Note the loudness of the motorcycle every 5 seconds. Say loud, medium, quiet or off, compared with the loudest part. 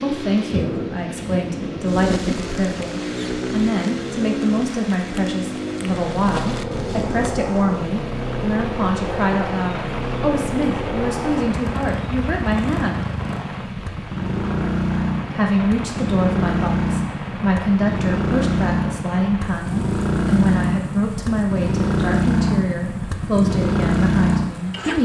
medium, medium, medium, loud, loud.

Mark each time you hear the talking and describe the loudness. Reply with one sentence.
The talking can be heard from 0.0 to 13.1 s, at a steady volume; and from 15.3 to 24.9 s, at a steady volume.